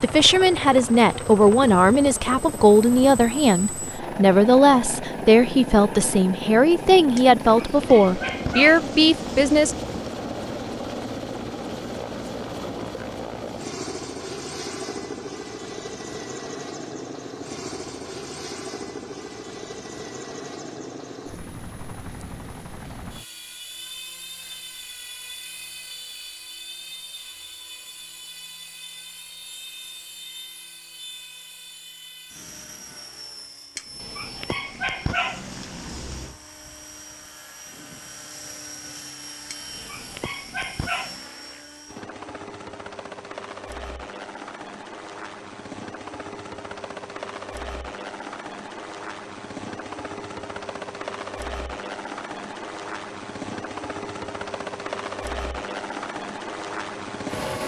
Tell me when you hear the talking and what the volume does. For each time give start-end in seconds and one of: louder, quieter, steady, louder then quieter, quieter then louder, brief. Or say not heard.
0.0-9.8 steady.